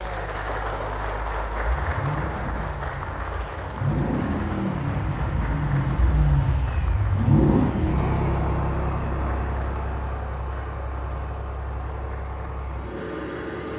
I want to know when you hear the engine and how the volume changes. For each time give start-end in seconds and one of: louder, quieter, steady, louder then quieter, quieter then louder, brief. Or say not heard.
0.0-13.7 louder then quieter.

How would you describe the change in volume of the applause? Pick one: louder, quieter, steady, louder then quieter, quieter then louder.
quieter.